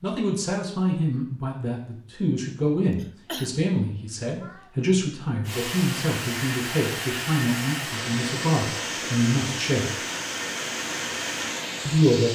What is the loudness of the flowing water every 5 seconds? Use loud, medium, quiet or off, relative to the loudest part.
off, loud, loud.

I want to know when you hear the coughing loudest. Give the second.
3 s.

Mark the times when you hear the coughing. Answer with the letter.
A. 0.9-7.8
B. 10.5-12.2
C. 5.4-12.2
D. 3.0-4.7
D.